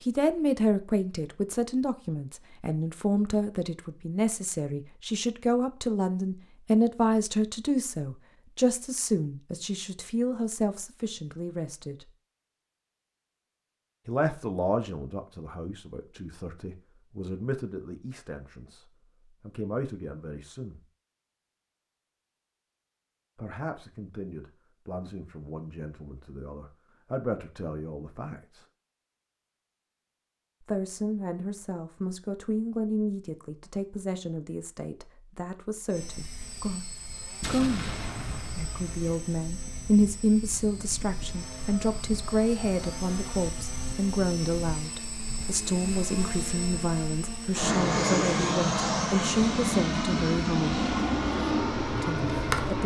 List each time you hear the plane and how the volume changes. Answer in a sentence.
The plane can be heard from 35.9 to 52.8 s, getting louder.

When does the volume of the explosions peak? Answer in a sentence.
The volume of the explosions peaks at 38 seconds.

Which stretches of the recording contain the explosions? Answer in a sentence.
You can hear the explosions from 37.4 to 39.0 s.